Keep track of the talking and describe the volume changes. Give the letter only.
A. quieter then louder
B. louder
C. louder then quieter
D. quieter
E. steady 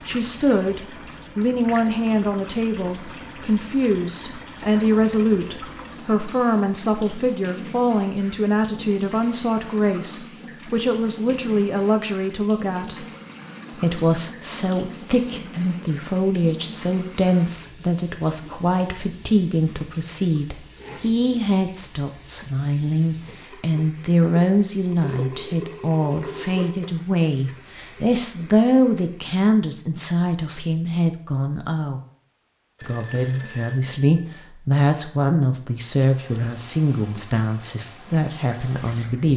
E.